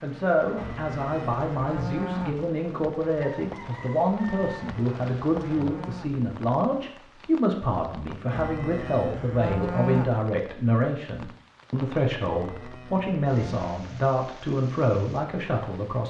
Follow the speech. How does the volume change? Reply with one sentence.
The volume of the speech stays about the same.